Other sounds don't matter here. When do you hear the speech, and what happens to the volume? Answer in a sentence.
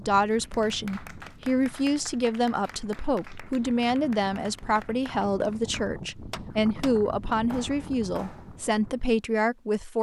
The speech can be heard from 0.0 to 9.9 s, at a steady volume.